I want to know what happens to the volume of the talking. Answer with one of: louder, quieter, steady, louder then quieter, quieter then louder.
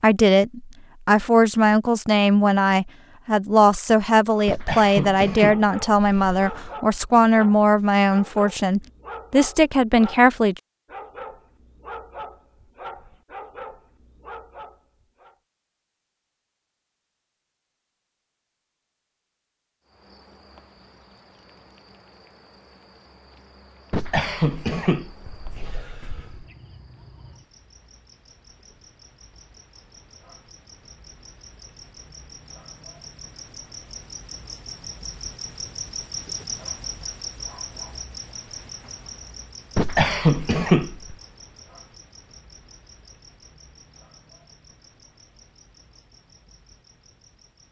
steady.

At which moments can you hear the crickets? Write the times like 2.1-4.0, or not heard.
19.8-47.6.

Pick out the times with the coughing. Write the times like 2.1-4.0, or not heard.
4.5-6.7, 23.9-26.4, 39.8-41.1.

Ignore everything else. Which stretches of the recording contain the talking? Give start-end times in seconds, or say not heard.
0.0-10.6.